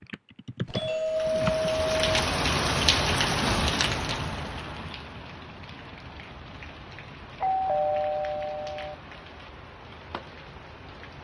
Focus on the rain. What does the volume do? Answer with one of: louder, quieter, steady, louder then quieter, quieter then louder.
quieter.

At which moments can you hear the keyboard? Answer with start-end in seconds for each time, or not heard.
0.0-1.7.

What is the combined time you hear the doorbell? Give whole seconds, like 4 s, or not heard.
3 s.